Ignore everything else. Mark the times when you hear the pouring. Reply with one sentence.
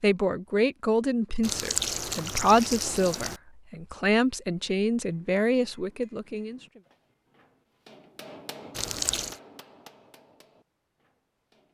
You can hear the pouring from 1.4 to 3.4 s and from 8.8 to 9.4 s.